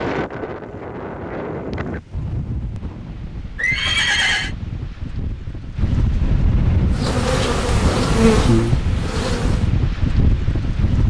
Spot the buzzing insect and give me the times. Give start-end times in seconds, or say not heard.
6.9-9.7.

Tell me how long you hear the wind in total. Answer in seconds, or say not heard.
11 s.